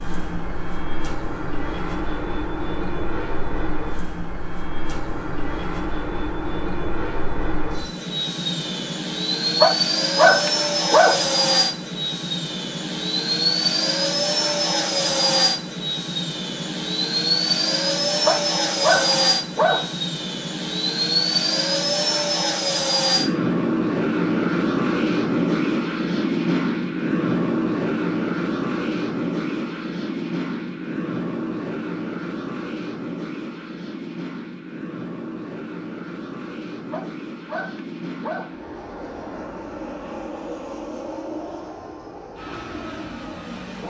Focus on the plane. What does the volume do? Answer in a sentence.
The loudness of the plane goes up, then down.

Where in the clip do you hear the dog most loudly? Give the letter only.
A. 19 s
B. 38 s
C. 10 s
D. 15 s
C.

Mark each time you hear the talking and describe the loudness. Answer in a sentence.
You can't hear the talking here.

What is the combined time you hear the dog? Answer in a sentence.
You can hear the dog for 5 seconds altogether.